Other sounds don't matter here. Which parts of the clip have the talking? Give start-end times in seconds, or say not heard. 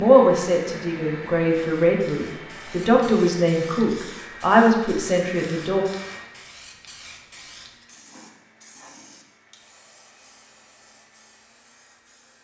0.0-5.8.